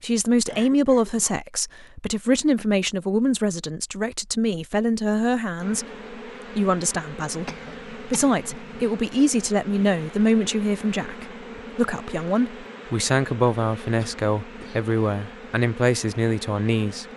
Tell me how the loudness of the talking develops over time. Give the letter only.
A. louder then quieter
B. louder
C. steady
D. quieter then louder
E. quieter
C.